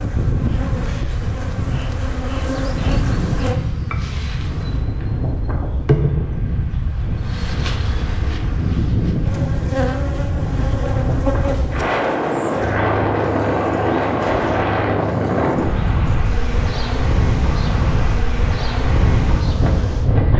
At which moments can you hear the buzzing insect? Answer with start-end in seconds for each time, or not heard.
0.0-20.3.